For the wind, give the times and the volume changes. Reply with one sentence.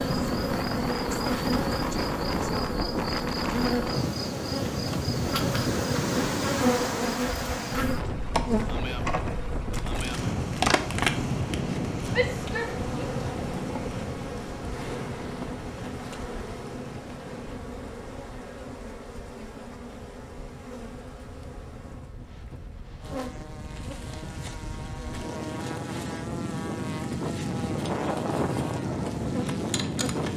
You can hear the wind from 0.0 to 30.3 s, getting quieter then louder.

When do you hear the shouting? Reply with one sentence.
You can hear the shouting from 12.1 to 13.1 s.